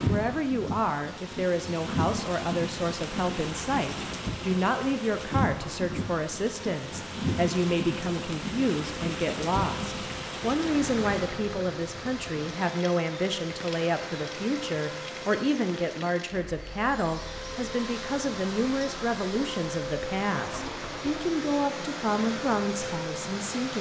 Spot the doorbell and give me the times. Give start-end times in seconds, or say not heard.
not heard.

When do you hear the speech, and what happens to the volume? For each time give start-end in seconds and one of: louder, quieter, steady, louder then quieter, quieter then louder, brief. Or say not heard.
0.1-23.7 steady.